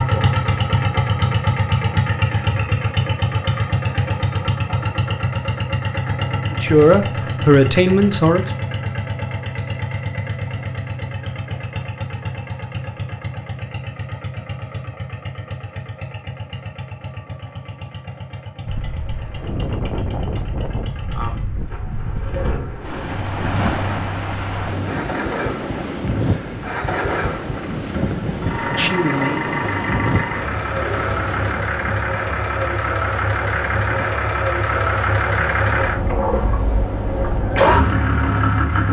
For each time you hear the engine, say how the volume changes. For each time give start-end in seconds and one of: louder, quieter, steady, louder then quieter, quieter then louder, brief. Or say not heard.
0.0-38.8 quieter then louder.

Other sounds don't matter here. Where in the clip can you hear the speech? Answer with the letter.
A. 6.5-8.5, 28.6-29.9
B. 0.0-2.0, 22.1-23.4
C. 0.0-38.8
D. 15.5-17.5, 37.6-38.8
A.